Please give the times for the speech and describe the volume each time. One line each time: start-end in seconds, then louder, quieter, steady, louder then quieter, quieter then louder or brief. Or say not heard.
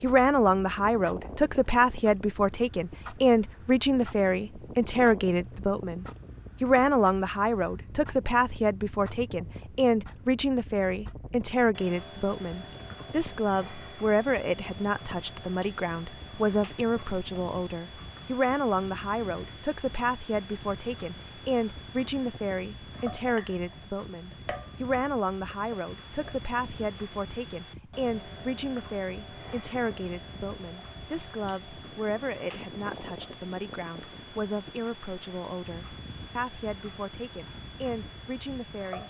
0.0-39.0 quieter.